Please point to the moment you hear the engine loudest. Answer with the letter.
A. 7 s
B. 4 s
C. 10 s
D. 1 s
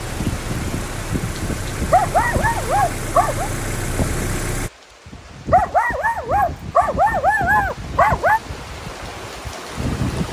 B.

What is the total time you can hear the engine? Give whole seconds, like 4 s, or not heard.
5 s.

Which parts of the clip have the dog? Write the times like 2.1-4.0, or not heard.
1.9-3.5, 5.5-8.4.